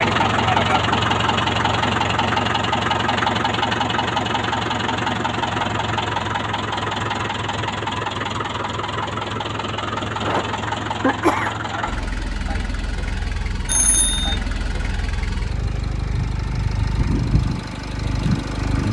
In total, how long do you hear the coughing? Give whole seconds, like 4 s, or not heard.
2 s.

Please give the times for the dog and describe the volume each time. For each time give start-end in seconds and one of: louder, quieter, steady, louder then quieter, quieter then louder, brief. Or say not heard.
not heard.